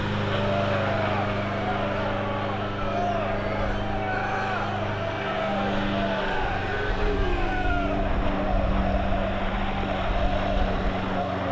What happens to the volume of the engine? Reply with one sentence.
The volume of the engine stays about the same.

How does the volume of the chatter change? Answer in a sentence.
The volume of the chatter stays about the same.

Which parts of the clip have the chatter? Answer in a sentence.
The chatter can be heard from 0.2 to 11.4 s.